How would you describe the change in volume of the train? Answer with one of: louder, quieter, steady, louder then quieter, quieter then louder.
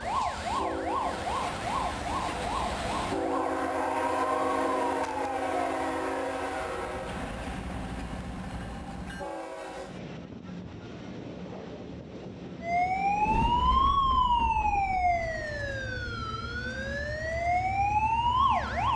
quieter.